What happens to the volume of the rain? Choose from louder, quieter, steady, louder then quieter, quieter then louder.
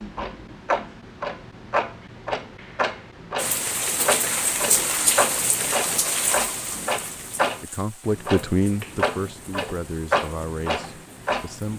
quieter.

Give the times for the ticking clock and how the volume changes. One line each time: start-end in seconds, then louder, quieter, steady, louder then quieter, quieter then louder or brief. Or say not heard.
0.0-11.7 steady.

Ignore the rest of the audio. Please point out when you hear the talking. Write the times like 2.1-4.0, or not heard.
7.6-11.7.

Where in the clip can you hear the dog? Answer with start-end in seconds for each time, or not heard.
not heard.